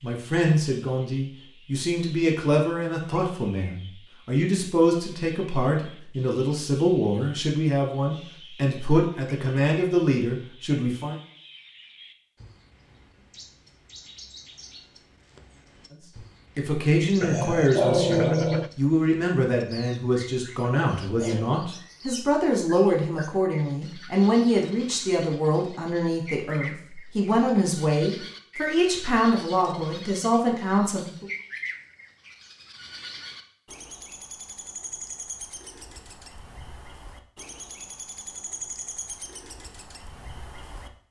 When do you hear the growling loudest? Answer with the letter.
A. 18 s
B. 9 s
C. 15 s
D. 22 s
A.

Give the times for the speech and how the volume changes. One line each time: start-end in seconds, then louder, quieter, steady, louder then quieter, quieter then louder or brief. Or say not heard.
0.0-11.2 steady
16.6-31.2 steady.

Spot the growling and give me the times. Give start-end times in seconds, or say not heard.
17.2-18.7, 20.6-21.6.